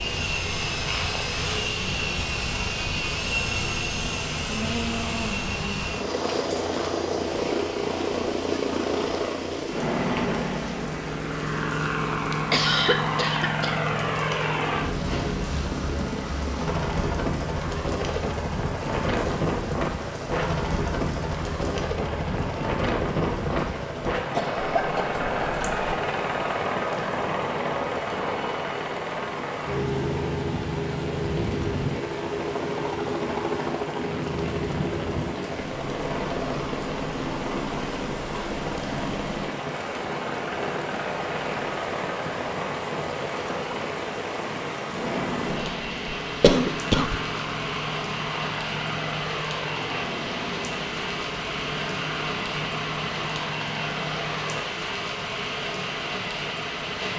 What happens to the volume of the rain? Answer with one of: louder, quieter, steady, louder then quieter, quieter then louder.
louder.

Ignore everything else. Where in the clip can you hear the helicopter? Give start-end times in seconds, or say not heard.
0.0-54.6.